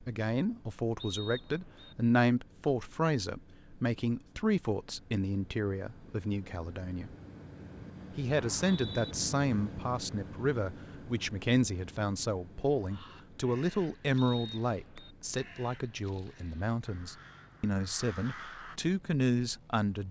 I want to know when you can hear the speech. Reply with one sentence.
The speech can be heard from 0.0 to 7.1 s and from 8.2 to 20.0 s.